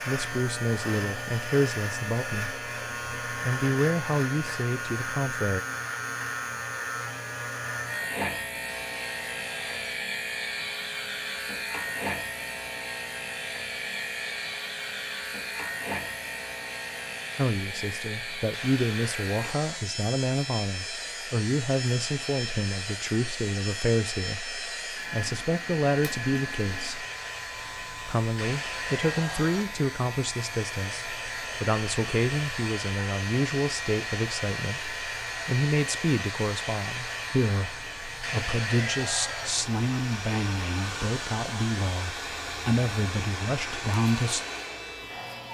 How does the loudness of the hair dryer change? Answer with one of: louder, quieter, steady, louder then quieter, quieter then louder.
louder.